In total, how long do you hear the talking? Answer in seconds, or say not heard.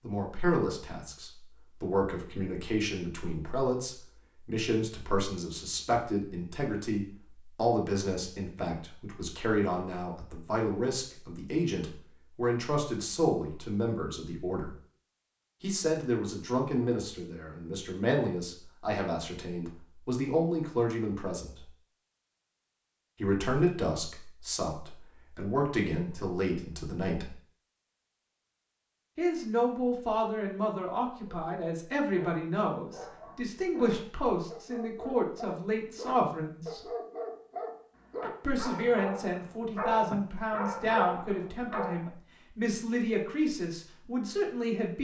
39 s.